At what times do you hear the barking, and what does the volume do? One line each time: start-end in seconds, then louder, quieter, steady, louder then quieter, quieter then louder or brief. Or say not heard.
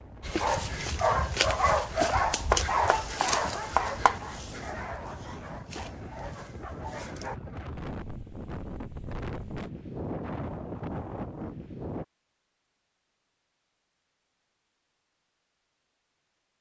0.2-7.3 quieter.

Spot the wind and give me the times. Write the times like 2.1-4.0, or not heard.
0.0-12.1.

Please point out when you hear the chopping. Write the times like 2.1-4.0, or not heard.
2.5-4.2.